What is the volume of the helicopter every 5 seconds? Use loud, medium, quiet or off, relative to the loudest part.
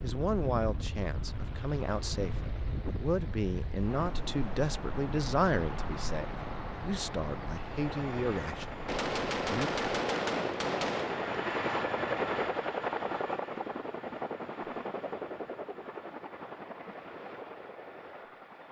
quiet, medium, loud, medium.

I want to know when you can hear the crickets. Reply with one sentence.
You can't hear the crickets here.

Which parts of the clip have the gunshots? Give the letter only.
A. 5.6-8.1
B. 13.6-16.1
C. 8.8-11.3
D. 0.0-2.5
C.